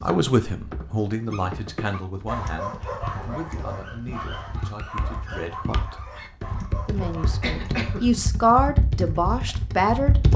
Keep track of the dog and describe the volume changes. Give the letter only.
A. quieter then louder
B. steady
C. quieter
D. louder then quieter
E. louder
C.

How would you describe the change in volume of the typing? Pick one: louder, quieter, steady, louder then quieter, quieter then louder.
louder.